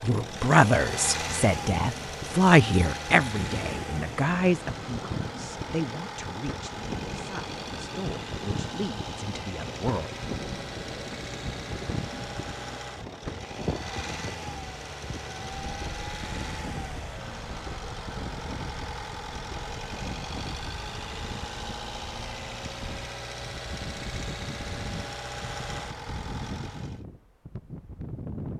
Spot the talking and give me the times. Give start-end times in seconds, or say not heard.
0.0-10.1.